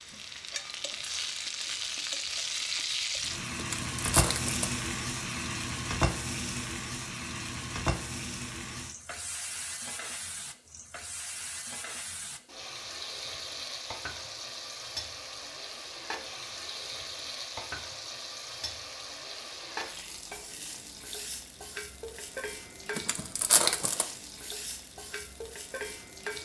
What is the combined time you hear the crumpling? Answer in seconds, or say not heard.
2 s.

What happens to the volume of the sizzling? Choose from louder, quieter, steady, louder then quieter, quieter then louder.
quieter.